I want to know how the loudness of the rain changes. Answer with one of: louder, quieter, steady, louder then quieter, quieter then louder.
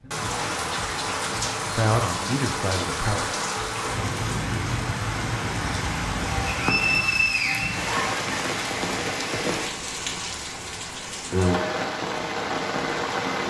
steady.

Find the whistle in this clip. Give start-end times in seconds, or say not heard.
6.5-7.8.